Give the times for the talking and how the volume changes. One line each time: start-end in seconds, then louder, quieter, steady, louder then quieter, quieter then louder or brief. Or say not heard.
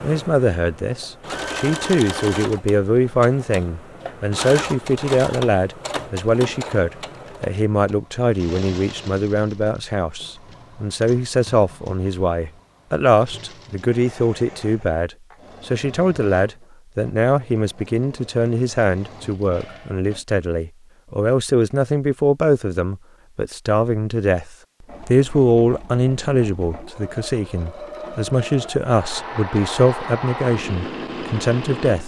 0.0-32.0 steady.